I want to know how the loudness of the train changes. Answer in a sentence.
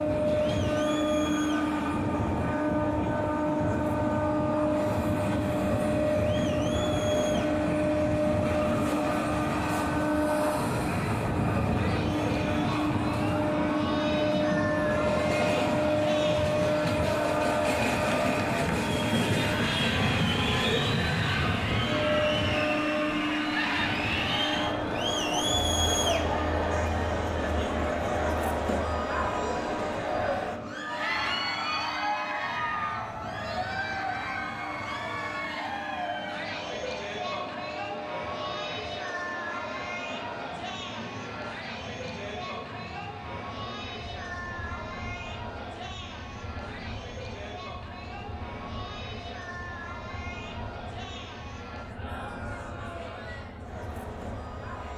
The volume of the train goes down.